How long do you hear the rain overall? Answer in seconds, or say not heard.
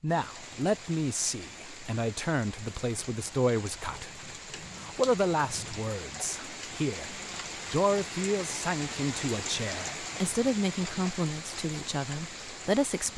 13 s.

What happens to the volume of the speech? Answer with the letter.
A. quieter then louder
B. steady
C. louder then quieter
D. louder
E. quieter
B.